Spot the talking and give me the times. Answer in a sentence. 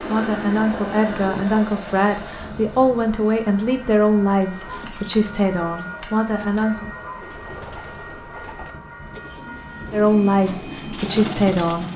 You can hear the talking from 0.0 to 6.8 s and from 9.9 to 11.9 s.